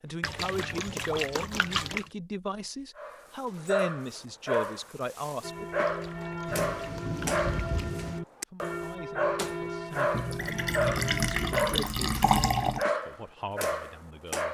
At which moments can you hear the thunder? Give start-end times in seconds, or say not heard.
6.5-8.2.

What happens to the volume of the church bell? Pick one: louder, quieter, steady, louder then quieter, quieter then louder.
steady.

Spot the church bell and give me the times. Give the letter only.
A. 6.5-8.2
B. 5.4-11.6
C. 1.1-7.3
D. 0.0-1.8
B.